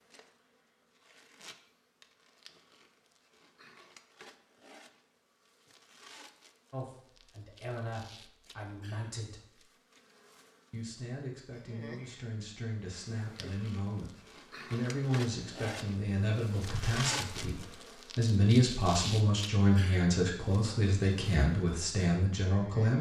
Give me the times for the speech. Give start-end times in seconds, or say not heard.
6.7-9.6, 10.7-22.9.